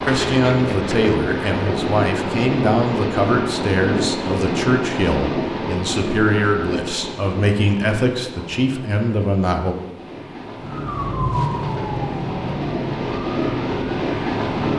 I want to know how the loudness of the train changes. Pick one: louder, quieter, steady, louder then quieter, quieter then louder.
quieter then louder.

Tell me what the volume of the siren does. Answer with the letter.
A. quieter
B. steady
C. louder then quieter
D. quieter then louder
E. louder
A.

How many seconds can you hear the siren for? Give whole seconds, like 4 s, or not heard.
4 s.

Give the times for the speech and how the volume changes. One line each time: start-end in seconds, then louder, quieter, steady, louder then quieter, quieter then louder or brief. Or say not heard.
0.0-9.8 steady.